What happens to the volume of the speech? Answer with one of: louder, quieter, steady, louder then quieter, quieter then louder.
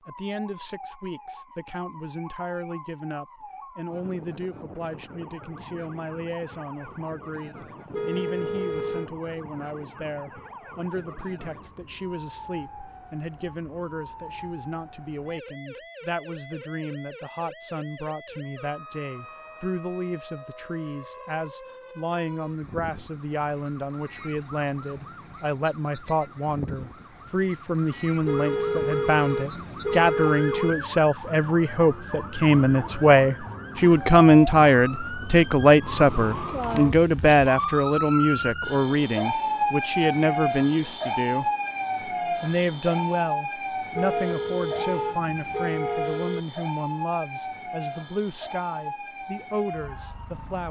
louder then quieter.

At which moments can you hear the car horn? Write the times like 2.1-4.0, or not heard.
7.9-9.1, 28.2-30.8, 43.9-46.4.